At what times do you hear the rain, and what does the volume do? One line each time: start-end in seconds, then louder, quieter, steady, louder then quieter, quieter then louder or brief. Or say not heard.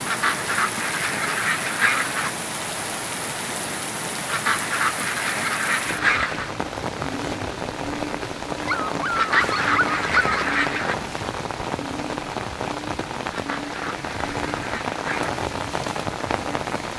0.0-16.9 steady.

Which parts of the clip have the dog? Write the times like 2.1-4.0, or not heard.
8.7-10.4.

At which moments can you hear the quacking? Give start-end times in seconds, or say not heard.
0.1-2.3, 4.2-6.5, 9.2-10.9, 13.3-15.4.